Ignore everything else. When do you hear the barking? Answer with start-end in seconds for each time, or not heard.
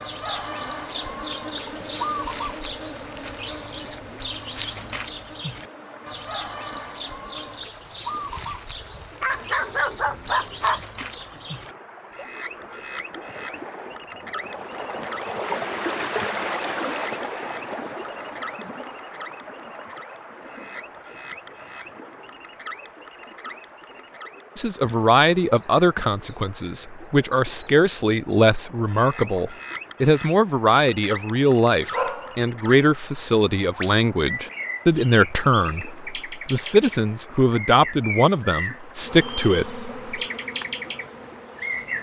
8.3-10.8, 31.9-32.5.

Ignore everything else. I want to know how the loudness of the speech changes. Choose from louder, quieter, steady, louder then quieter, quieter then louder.
steady.